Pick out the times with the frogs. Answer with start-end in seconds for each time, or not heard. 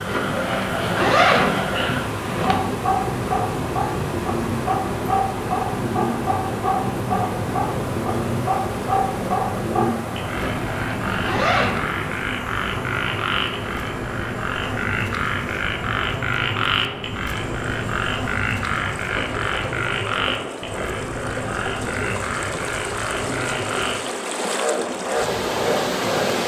0.0-26.2.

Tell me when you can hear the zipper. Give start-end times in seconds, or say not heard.
0.1-2.5, 10.3-11.8, 19.1-19.8.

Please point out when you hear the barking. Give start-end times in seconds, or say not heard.
not heard.